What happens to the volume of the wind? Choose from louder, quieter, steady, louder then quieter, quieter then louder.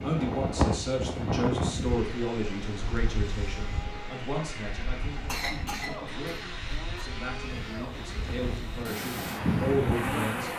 quieter then louder.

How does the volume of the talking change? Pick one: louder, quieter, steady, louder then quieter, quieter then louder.
quieter then louder.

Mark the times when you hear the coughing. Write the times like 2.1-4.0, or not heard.
5.2-7.0.